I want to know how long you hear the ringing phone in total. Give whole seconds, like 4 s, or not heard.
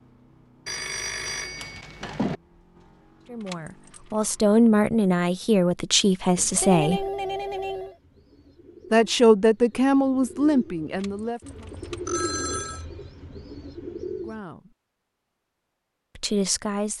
5 s.